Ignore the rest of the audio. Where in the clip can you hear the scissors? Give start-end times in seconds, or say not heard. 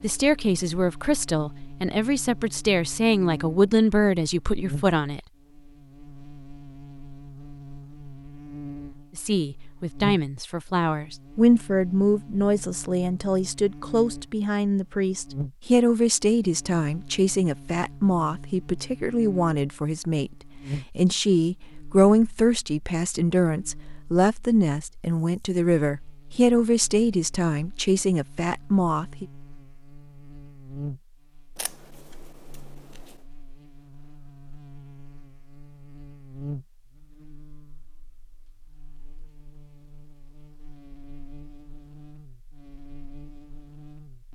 31.6-33.2.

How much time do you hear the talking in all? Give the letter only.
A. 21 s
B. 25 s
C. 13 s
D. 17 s
B.